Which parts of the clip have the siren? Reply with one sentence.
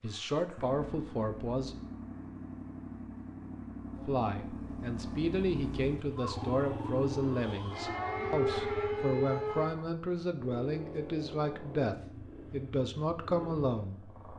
You can hear the siren from 6.2 to 9.7 s.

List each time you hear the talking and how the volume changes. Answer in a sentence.
You can hear the talking briefly from 0.0 to 1.8 s; and from 4.0 to 14.2 s, at a steady volume.